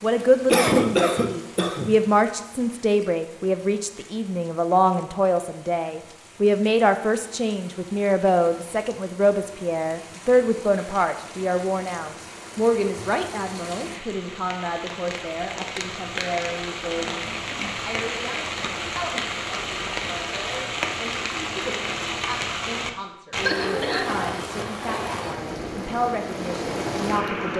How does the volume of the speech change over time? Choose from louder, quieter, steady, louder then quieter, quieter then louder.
quieter.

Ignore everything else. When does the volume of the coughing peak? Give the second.
1 s.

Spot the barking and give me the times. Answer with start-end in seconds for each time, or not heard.
not heard.